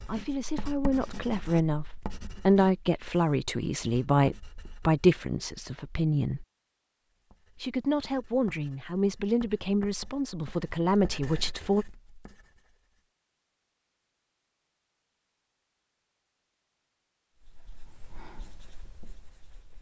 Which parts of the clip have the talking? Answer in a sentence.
The talking can be heard from 0.1 to 6.5 s and from 7.6 to 11.8 s.